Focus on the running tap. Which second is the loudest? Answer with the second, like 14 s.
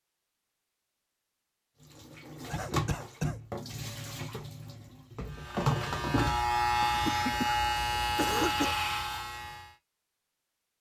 6 s.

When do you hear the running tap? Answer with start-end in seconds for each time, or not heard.
1.9-6.3.